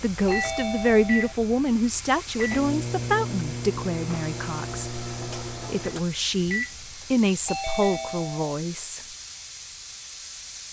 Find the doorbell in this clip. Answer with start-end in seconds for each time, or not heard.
0.2-1.4, 7.5-8.4.